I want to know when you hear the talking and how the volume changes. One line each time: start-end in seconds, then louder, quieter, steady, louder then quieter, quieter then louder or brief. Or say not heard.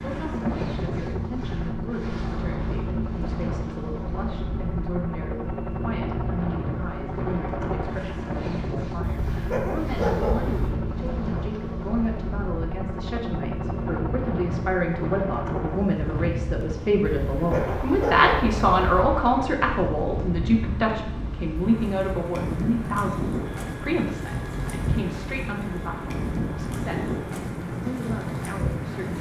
0.0-29.1 louder then quieter.